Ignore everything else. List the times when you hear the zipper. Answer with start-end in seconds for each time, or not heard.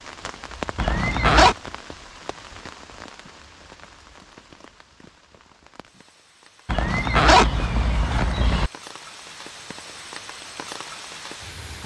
0.8-1.6, 6.7-8.7.